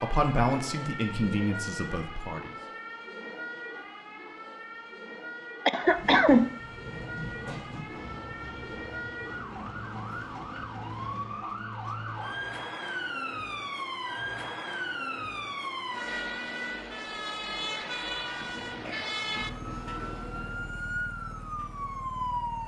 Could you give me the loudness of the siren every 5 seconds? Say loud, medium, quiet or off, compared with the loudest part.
medium, medium, loud, loud, loud.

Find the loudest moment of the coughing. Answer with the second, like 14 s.
6 s.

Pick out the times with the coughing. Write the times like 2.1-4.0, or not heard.
5.7-6.5, 18.1-19.1.